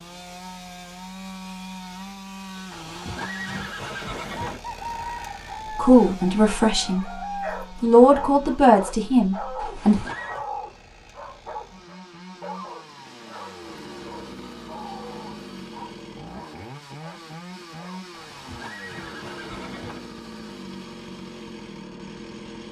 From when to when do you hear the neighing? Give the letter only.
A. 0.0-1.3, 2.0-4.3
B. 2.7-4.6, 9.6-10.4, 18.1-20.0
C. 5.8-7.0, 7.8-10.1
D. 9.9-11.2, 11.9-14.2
B.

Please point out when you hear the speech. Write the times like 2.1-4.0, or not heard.
5.8-7.0, 7.8-10.1.